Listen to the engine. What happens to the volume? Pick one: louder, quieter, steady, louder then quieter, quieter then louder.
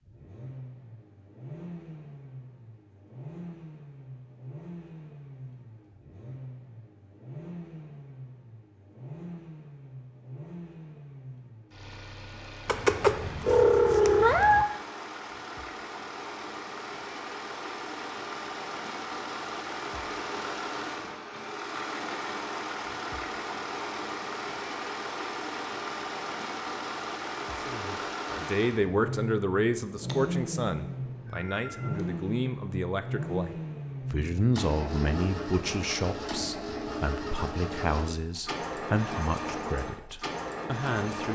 louder.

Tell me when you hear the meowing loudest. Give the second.
14 s.